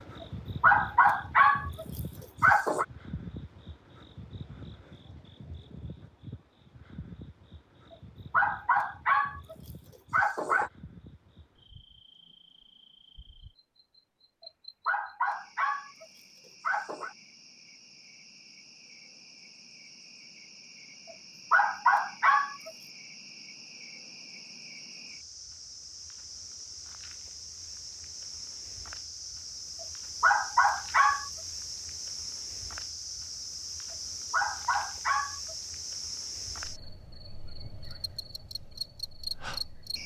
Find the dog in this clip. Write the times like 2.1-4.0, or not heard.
0.2-2.9, 8.3-10.7, 14.8-17.1, 21.5-22.7, 30.2-31.3, 33.9-35.5.